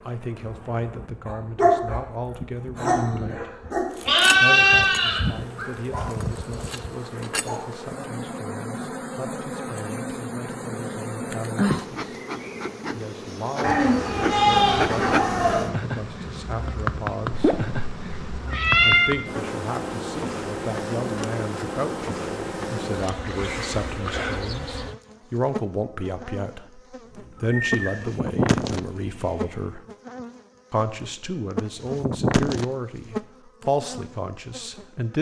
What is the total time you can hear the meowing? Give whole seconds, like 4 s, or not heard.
2 s.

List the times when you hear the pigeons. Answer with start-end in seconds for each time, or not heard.
not heard.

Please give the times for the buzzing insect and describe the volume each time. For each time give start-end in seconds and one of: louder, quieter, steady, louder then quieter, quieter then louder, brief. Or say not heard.
0.0-34.9 louder.